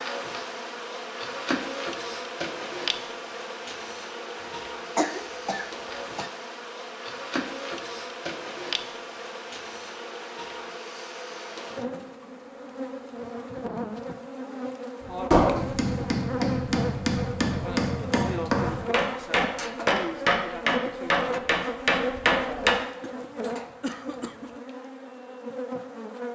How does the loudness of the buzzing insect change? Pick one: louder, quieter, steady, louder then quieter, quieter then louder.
steady.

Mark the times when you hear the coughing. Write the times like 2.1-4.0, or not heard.
4.4-6.3, 23.0-24.6.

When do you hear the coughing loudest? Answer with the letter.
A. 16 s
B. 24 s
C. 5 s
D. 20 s
C.